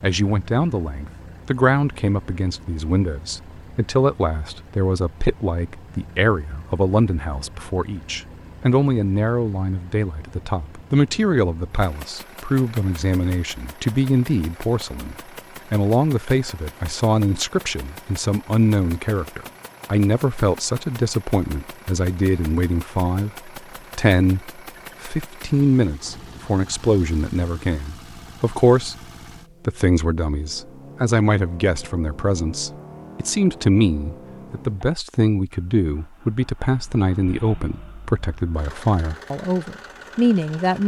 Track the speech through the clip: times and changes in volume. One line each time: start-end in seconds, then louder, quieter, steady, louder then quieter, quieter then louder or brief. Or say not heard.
0.0-28.9 steady
29.6-40.8 steady.